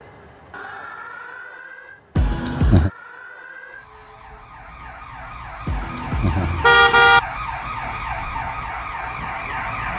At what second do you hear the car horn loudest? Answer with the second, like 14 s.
7 s.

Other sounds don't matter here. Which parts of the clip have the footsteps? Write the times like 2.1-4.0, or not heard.
not heard.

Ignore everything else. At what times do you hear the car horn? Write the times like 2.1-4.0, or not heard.
2.1-2.9, 5.7-7.2.